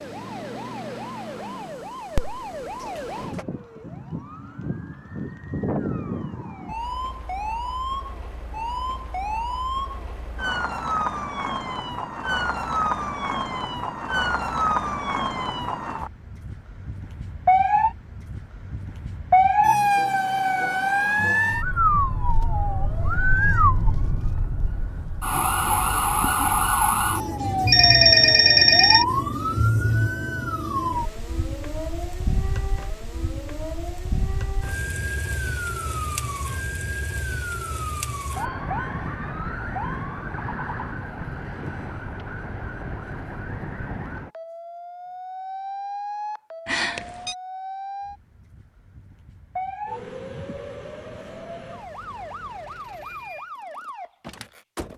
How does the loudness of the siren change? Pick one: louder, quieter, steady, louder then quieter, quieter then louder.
louder then quieter.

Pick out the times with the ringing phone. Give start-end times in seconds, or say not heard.
2.1-3.5, 27.6-29.1, 46.6-47.4.